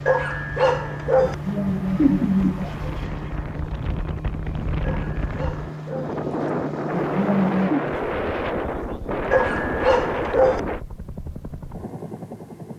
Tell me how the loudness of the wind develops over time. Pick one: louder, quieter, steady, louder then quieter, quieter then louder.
louder.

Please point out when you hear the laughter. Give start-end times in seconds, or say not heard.
1.2-3.0, 6.9-7.8.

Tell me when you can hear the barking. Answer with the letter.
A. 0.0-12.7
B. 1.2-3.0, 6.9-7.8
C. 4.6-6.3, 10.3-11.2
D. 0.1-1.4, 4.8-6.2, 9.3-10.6
D.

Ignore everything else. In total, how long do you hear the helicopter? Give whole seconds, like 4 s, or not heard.
13 s.